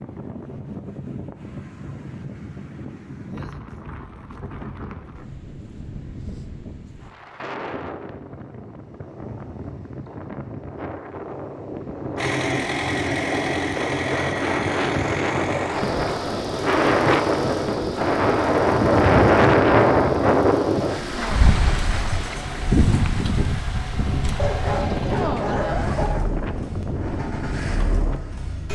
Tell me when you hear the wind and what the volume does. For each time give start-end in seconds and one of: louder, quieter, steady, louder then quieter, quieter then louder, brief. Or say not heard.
0.0-28.7 louder then quieter.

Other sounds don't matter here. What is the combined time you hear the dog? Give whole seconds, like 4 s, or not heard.
2 s.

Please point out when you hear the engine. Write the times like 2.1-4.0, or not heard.
12.2-28.7.